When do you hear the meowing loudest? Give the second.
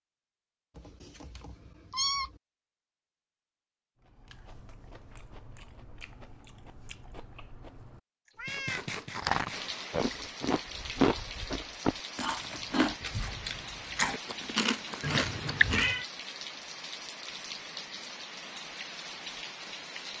16 s.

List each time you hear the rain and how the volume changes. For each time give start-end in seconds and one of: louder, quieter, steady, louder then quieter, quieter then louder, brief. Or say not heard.
9.5-20.1 steady.